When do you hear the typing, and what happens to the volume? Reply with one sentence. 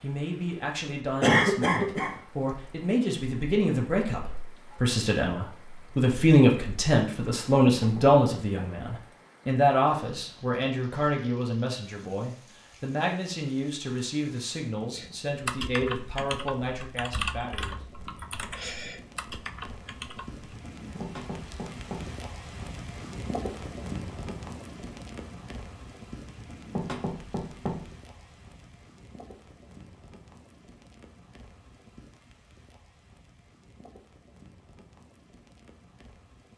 The typing can be heard from 14.9 to 20.4 s, getting quieter.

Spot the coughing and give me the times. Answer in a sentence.
You can hear the coughing from 1.2 to 2.1 s.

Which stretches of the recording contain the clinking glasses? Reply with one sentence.
The clinking glasses can't be heard in this clip.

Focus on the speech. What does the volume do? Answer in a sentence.
The loudness of the speech goes up, then down.